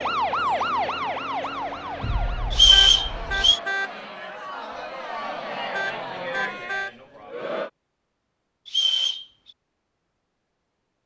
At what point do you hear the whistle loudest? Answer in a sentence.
The loudest moment of the whistle is at 3 seconds.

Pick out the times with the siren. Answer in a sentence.
The siren can be heard from 0.0 to 3.5 s.